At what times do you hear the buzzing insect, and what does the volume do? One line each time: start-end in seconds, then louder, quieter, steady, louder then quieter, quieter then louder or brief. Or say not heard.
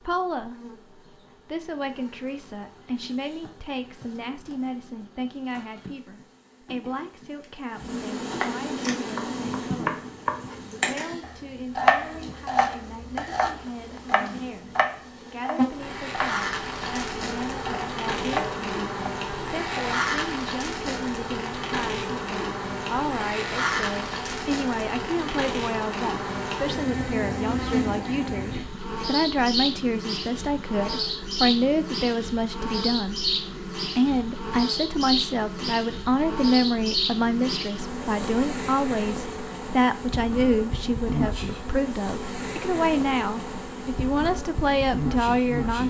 0.0-45.8 louder.